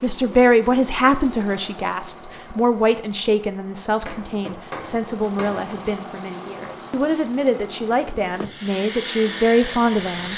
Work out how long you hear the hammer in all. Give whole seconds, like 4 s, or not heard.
2 s.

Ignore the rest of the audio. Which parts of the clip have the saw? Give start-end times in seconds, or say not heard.
8.2-10.3.